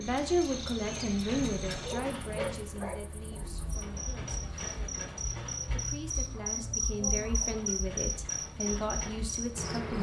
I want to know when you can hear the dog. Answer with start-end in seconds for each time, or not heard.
1.3-3.9.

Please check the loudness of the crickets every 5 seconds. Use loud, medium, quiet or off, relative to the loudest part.
medium, loud.